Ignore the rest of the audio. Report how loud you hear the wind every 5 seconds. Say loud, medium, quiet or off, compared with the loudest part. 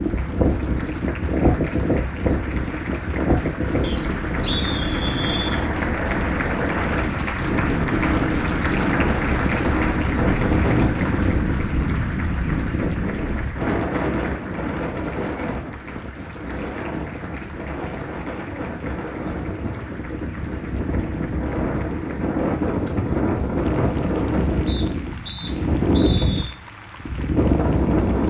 loud, loud, loud, medium, loud, loud.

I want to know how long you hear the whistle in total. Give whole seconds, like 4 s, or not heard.
4 s.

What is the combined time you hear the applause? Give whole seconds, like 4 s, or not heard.
28 s.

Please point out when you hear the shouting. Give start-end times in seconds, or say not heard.
not heard.